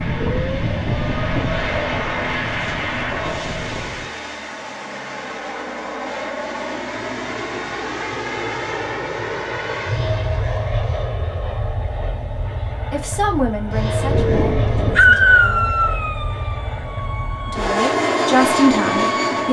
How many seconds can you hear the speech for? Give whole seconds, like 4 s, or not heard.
5 s.